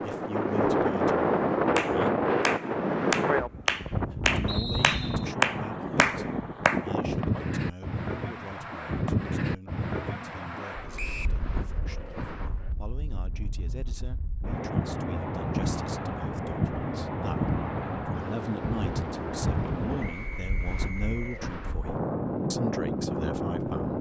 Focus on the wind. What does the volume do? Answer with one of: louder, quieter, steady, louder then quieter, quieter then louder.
quieter then louder.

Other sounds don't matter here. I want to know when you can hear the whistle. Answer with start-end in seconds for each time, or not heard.
4.5-5.2, 10.9-11.4, 20.0-21.4.